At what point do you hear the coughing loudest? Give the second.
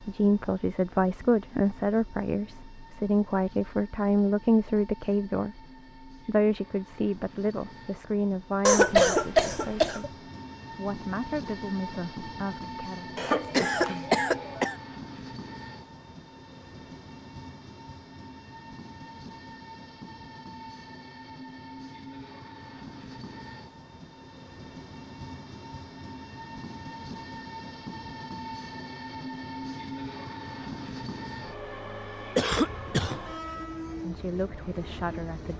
9 s.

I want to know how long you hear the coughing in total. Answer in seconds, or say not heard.
4 s.